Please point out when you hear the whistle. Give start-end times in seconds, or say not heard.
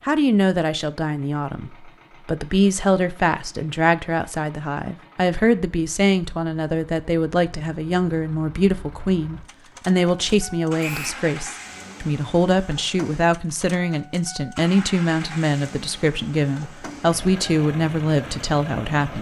10.8-11.2.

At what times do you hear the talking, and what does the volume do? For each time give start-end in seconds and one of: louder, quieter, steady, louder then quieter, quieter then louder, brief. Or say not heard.
0.1-19.1 steady.